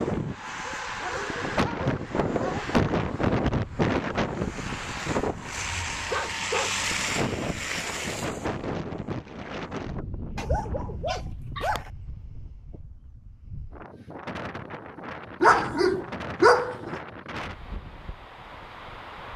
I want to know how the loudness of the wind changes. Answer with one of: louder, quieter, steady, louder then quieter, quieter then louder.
quieter.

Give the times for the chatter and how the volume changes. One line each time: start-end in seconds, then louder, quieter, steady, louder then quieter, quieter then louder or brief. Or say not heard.
not heard.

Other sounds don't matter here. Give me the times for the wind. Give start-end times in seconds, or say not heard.
0.0-19.3.